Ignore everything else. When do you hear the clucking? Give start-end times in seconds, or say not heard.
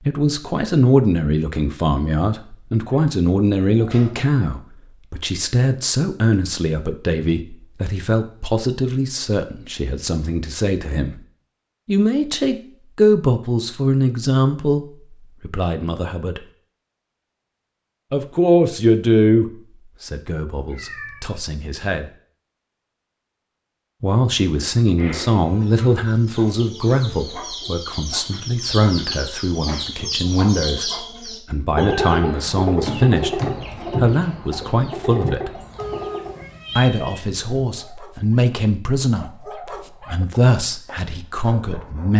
24.9-36.5.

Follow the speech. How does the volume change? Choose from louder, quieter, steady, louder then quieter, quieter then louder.
steady.